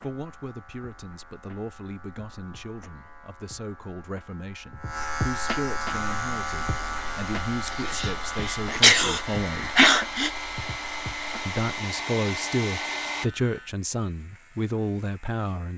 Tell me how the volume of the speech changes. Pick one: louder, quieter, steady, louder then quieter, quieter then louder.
louder.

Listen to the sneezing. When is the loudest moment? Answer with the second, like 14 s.
9 s.